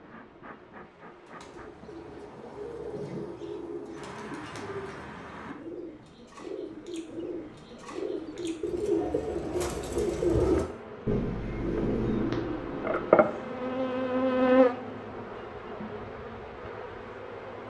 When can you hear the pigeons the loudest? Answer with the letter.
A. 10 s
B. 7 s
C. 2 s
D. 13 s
A.